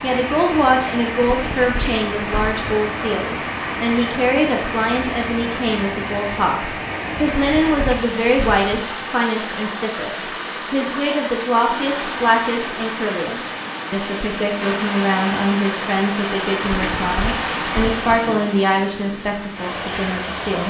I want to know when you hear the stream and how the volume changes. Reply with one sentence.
The stream can be heard from 0.0 to 20.6 s, at a steady volume.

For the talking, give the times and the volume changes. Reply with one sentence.
You can hear the talking from 0.0 to 20.6 s, at a steady volume.